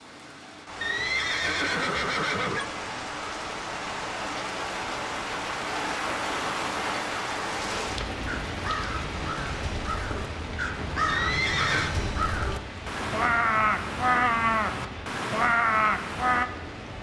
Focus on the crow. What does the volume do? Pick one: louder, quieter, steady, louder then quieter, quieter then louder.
louder.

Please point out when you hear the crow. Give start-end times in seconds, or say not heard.
8.2-16.4.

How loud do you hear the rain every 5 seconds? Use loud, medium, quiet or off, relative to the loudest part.
loud, loud, medium, medium.